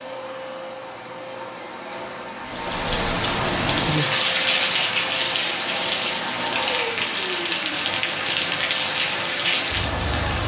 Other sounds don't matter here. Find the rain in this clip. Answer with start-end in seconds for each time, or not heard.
2.4-10.4.